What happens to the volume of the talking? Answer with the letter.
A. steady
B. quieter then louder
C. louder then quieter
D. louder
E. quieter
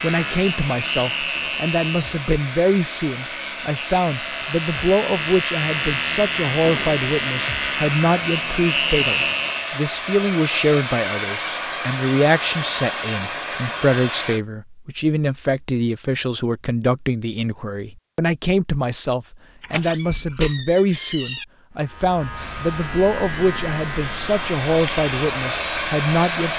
A.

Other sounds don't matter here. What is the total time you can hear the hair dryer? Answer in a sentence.
You can hear the hair dryer for 18 seconds altogether.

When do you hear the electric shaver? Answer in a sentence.
You can hear the electric shaver from 0.0 to 9.8 s and from 21.7 to 26.5 s.